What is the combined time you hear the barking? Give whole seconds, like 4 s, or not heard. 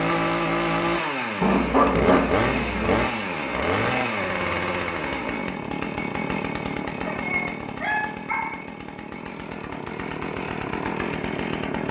3 s.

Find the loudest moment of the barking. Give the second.
2 s.